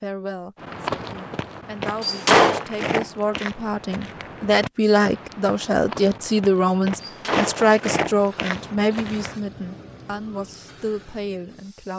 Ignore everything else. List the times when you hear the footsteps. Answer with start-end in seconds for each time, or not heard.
0.6-9.3.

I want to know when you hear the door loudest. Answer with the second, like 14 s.
2 s.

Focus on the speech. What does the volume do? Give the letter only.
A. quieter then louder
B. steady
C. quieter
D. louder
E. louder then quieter
E.